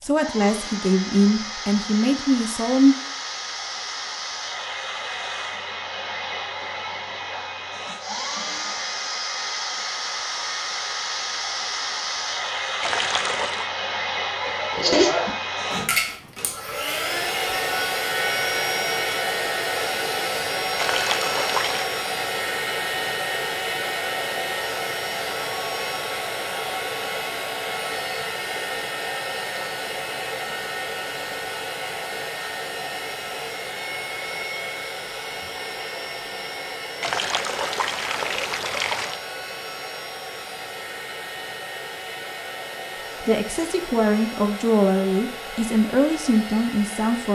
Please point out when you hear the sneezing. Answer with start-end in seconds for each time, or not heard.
14.4-15.3.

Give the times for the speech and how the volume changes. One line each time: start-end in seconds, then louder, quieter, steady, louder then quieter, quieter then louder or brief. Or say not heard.
0.0-3.0 brief
43.2-47.3 steady.